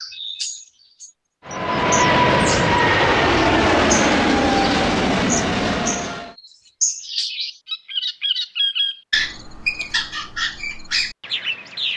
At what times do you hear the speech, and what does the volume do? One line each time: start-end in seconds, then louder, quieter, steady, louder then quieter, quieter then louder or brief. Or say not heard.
not heard.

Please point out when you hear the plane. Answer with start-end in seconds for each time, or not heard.
1.4-6.3.